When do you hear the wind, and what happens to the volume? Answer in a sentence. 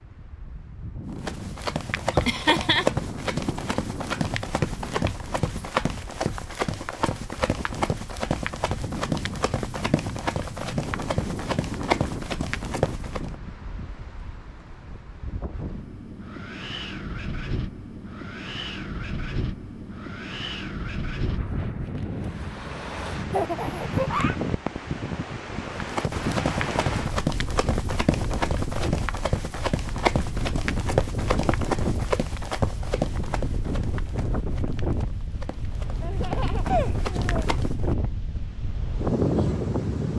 The wind can be heard from 0.0 to 40.1 s, getting louder.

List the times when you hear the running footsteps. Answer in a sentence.
The running footsteps can be heard from 1.2 to 13.3 s and from 25.8 to 38.0 s.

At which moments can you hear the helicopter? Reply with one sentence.
You can't hear the helicopter here.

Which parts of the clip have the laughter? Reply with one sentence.
You can hear the laughter from 2.1 to 2.9 s, from 23.3 to 24.4 s and from 36.0 to 37.5 s.